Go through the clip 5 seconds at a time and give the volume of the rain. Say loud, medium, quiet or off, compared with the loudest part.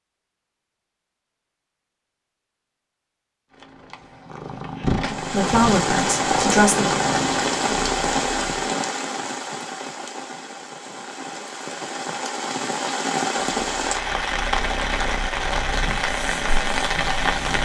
off, loud, loud, loud.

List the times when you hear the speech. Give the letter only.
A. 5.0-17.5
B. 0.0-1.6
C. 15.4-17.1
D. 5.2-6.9
D.